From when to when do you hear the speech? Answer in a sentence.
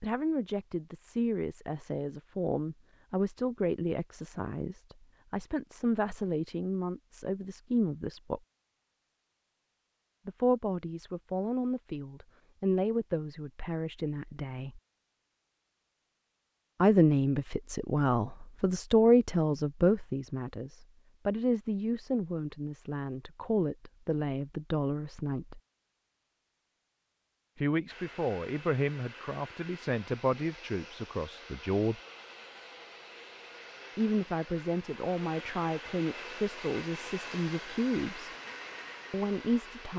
You can hear the speech from 0.0 to 8.4 s, from 10.2 to 14.8 s, from 16.8 to 25.6 s, from 27.6 to 31.9 s, from 34.0 to 38.3 s and from 39.1 to 39.9 s.